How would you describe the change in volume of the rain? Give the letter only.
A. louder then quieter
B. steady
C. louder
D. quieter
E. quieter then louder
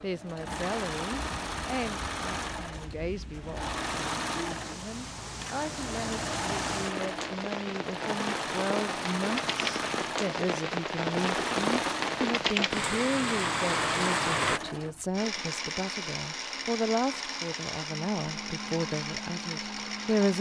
C.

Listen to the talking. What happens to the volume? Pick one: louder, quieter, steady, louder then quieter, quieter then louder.
louder.